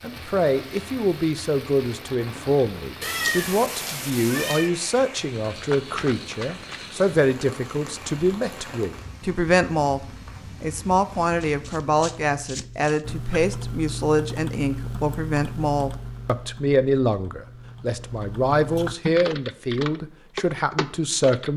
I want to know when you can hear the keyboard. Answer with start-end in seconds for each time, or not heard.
13.0-21.5.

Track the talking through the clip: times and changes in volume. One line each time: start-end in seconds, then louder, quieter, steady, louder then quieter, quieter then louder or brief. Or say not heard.
0.0-21.5 steady.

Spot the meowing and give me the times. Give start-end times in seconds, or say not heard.
3.0-4.7.